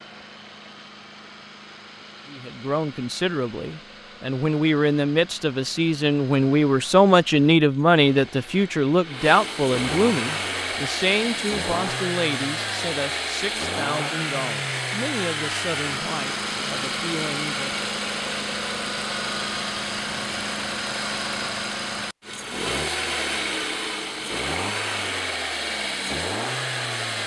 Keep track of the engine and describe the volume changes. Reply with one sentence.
The loudness of the engine goes up.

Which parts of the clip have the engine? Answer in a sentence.
You can hear the engine from 0.0 to 27.2 s.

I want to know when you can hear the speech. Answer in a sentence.
You can hear the speech from 2.2 to 17.8 s.